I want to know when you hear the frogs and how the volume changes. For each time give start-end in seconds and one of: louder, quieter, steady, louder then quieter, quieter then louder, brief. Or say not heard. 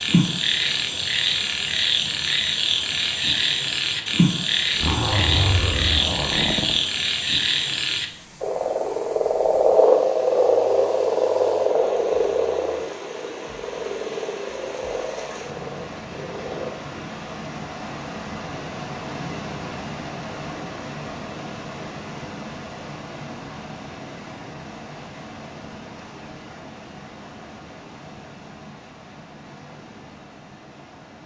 0.0-16.9 quieter.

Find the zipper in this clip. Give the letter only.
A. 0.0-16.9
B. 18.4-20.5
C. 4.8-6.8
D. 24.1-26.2
C.